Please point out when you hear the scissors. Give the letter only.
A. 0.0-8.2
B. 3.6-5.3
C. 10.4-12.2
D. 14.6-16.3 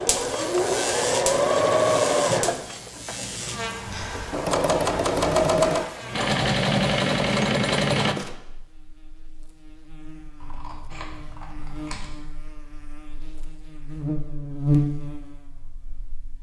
C.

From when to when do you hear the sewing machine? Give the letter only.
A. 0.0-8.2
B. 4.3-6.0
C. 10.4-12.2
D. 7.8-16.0
A.